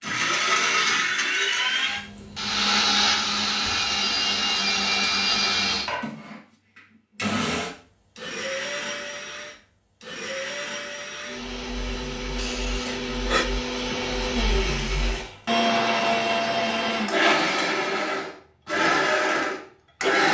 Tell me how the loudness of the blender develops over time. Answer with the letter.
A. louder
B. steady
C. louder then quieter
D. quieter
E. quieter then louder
E.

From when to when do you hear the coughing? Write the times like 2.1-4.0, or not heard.
12.3-13.4.